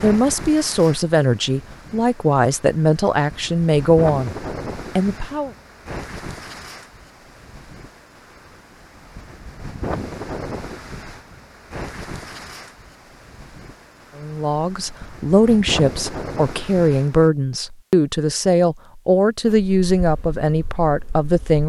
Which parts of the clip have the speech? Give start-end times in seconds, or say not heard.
0.0-5.5, 14.2-21.6.